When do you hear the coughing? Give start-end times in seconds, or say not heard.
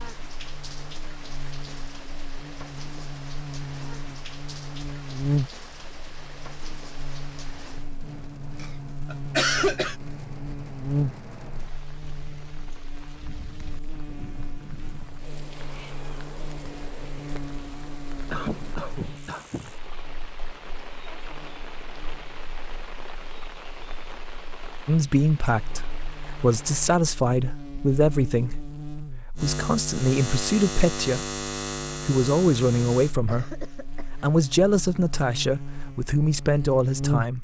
8.6-9.9, 18.3-19.7, 33.2-34.3.